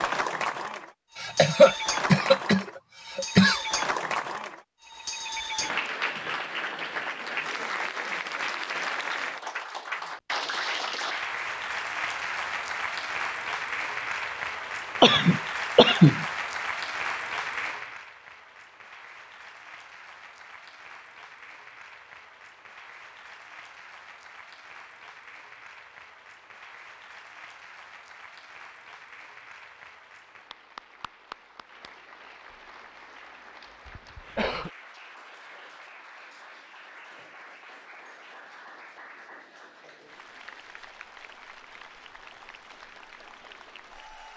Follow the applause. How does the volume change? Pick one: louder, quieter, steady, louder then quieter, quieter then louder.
quieter.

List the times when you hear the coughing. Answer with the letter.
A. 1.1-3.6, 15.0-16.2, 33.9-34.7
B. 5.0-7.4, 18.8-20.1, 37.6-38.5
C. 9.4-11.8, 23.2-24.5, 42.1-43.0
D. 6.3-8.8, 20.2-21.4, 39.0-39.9
A.